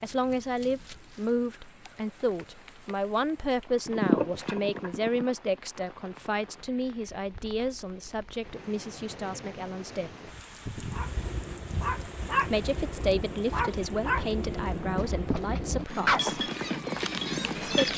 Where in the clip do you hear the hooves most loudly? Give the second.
4 s.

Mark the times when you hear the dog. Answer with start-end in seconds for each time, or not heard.
10.8-16.4.